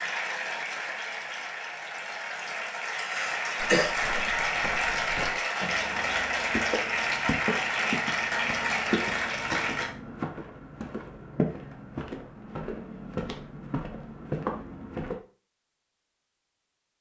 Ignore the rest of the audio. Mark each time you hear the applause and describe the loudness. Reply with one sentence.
You can hear the applause from 0.0 to 9.9 s, getting louder.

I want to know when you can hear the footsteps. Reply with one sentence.
The footsteps can be heard from 3.6 to 15.2 s.